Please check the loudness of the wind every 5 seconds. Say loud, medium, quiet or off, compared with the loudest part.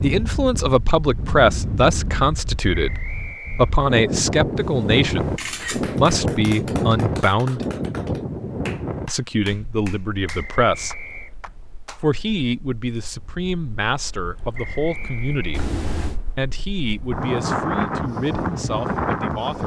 loud, loud, quiet, loud.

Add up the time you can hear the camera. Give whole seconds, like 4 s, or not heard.
2 s.